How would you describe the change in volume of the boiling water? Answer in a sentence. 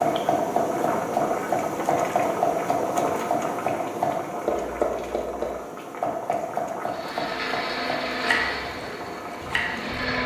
The loudness of the boiling water goes down.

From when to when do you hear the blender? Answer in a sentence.
You can hear the blender from 6.8 to 10.2 s.